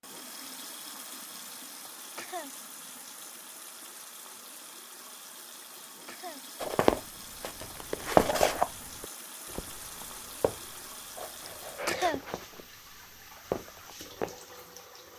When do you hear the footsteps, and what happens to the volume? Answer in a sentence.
You can hear the footsteps from 6.6 to 14.3 s, getting quieter then louder.